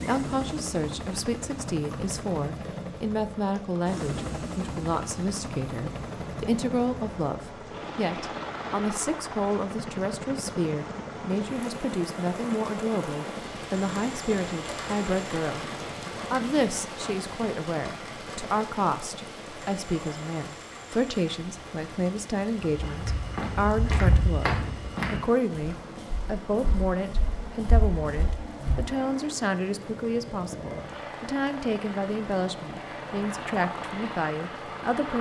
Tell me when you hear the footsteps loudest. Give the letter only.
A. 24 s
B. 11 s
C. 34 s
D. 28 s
A.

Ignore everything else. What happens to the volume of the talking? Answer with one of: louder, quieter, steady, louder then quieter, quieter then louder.
steady.